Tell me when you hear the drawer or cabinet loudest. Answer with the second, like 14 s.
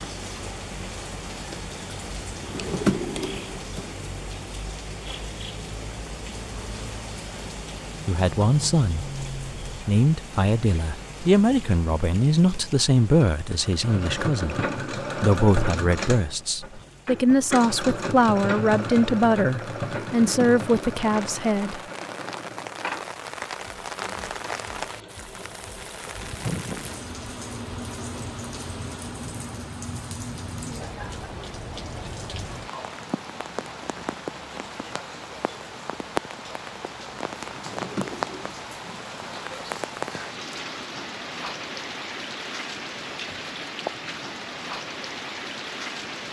3 s.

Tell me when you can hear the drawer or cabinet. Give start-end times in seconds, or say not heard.
2.5-3.9, 20.2-21.4, 37.5-39.0.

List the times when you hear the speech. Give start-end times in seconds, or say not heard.
8.1-21.8.